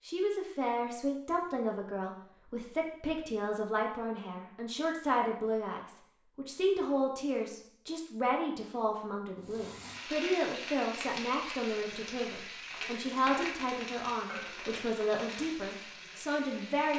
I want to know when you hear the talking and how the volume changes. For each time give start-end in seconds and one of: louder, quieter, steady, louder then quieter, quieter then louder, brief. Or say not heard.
0.1-16.9 steady.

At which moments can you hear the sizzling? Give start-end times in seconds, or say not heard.
9.4-16.9.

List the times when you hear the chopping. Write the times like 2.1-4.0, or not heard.
not heard.